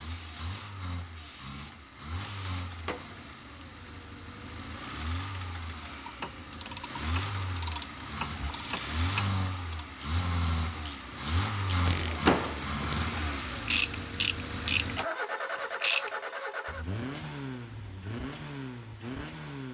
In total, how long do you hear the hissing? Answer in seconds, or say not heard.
4 s.